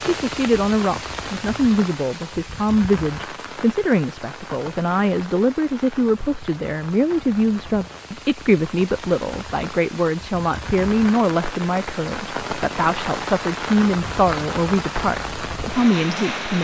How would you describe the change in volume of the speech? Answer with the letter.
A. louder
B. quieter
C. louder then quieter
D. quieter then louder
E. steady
E.